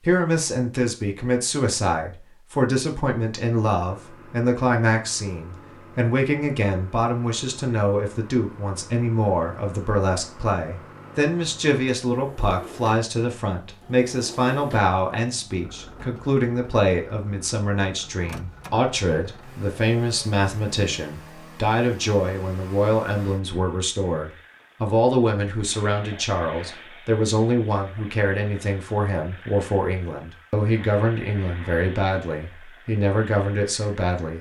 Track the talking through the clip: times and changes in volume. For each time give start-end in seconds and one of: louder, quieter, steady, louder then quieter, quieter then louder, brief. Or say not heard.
0.0-34.3 steady.